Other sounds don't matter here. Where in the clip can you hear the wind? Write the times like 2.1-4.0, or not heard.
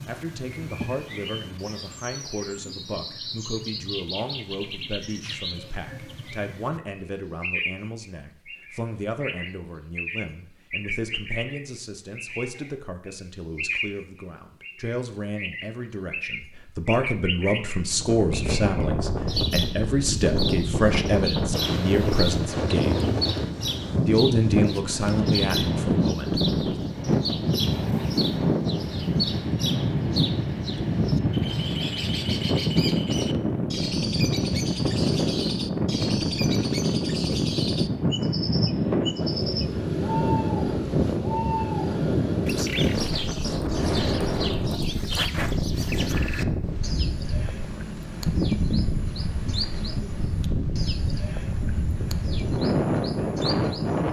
17.9-54.0.